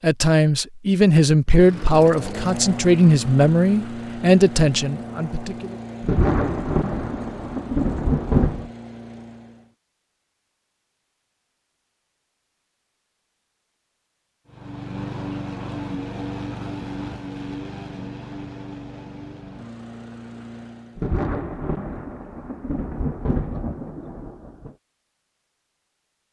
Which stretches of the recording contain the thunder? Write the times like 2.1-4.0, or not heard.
6.0-8.7, 20.9-24.8.